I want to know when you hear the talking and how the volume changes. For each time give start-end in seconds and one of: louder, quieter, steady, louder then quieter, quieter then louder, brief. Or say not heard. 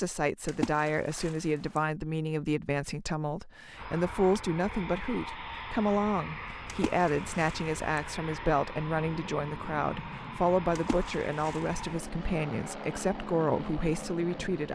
0.0-14.7 steady.